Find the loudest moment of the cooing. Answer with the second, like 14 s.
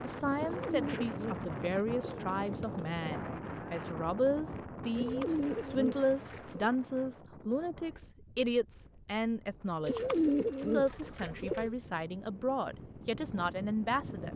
10 s.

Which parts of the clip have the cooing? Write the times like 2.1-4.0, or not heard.
0.3-3.0, 5.0-6.7, 9.8-11.8.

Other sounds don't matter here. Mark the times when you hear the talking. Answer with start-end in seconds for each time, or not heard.
0.0-14.3.